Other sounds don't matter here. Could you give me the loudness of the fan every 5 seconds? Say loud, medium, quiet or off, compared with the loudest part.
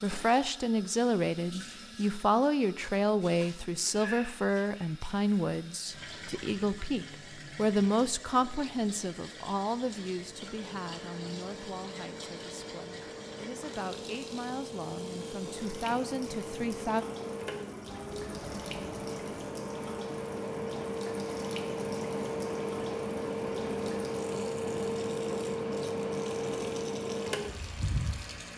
off, off, medium, medium, loud, loud.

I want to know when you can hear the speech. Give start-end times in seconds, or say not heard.
0.0-17.1.